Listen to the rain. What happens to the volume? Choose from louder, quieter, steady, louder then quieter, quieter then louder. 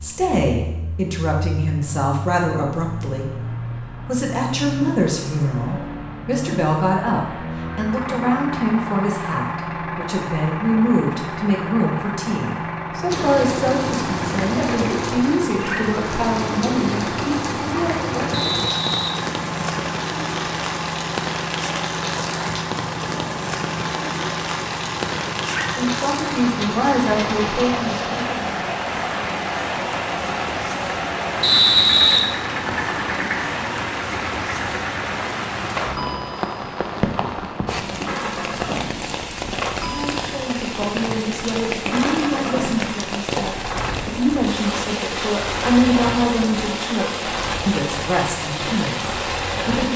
steady.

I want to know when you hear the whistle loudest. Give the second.
32 s.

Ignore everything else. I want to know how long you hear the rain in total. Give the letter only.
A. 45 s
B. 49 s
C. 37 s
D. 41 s
C.